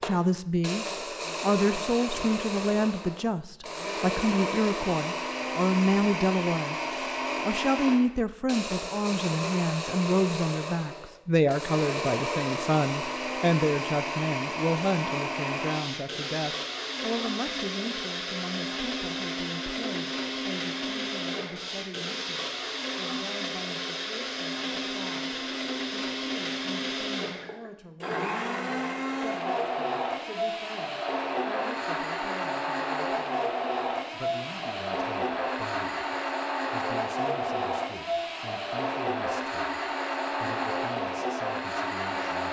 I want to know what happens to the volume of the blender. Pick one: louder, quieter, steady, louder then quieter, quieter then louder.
steady.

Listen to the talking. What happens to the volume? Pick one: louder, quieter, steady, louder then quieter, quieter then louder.
quieter.